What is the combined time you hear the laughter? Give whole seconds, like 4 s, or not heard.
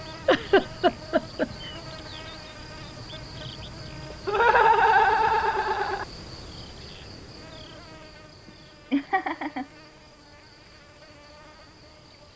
4 s.